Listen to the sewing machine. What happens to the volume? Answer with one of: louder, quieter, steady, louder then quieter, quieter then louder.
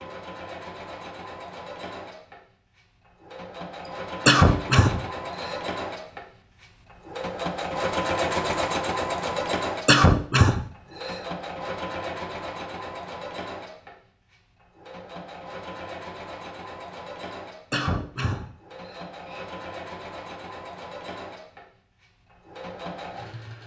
louder then quieter.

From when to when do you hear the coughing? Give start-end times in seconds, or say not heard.
4.2-5.5, 9.8-11.2, 17.7-19.4.